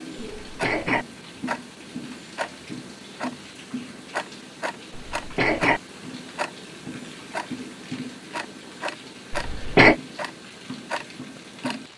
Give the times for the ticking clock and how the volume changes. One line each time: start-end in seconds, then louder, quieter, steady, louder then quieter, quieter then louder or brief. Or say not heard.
0.0-11.9 steady.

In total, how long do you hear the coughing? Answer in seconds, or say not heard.
2 s.